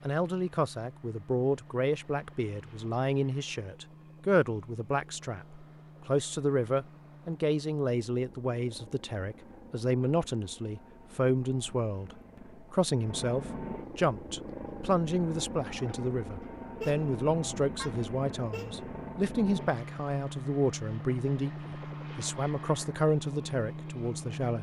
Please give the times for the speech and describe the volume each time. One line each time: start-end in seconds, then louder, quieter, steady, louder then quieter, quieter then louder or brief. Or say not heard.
0.1-24.5 steady.